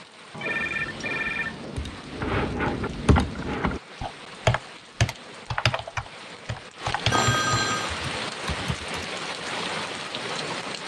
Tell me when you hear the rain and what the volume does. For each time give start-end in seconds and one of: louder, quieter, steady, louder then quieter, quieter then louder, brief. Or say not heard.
0.0-10.8 louder.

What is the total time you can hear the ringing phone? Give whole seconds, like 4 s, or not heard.
2 s.